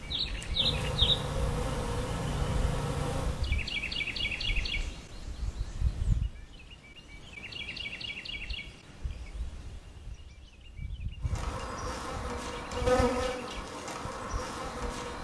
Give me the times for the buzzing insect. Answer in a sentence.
You can hear the buzzing insect from 0.0 to 3.5 s and from 11.2 to 15.1 s.